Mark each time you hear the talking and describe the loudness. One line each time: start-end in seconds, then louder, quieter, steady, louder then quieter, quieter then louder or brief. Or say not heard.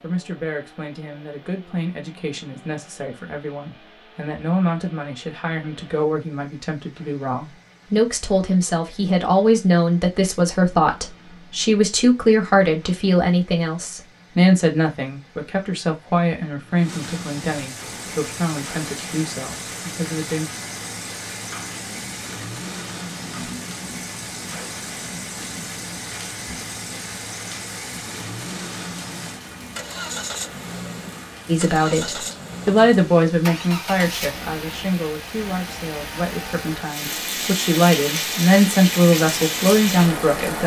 0.0-20.4 louder then quieter
31.4-40.6 quieter then louder.